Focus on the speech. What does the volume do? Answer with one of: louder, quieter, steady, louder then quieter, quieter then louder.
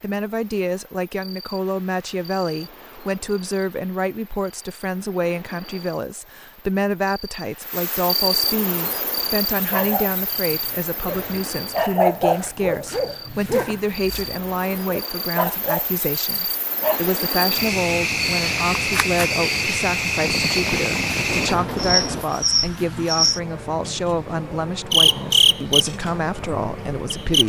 steady.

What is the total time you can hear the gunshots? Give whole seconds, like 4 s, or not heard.
2 s.